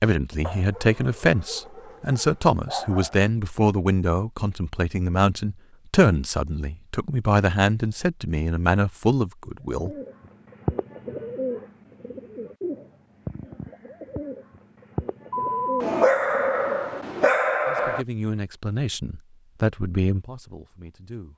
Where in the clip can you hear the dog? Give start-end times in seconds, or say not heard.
0.4-3.3, 15.3-18.1.